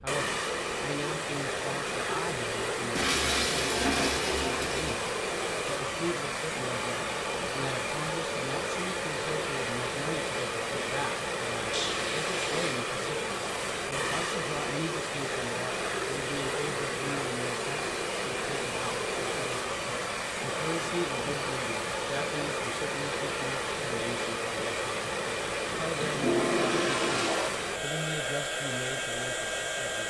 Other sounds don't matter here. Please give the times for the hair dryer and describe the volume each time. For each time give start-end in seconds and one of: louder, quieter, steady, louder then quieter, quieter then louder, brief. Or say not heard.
0.0-30.0 steady.